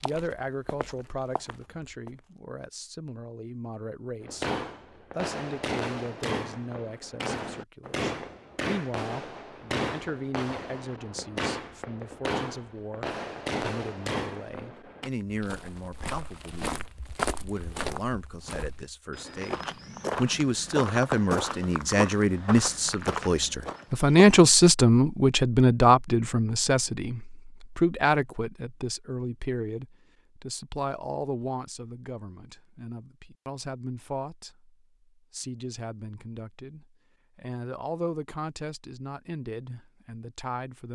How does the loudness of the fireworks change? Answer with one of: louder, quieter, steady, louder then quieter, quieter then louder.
steady.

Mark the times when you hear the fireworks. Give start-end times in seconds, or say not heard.
4.2-15.1.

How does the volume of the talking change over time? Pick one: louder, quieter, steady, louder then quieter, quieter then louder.
louder then quieter.